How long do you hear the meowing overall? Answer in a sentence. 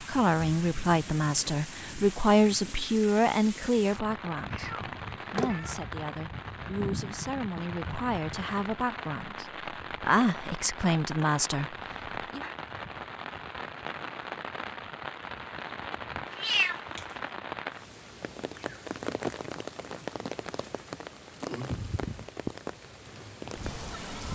The meowing can be heard for 2 seconds in total.